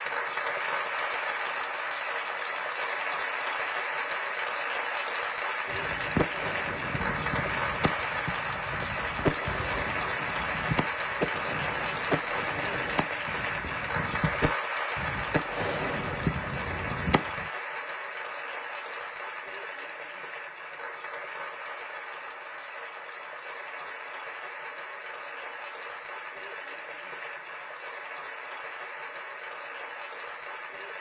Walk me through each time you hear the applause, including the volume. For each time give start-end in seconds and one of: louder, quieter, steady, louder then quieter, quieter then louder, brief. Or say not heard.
0.0-30.9 quieter.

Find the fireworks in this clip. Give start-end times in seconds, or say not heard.
5.7-17.4.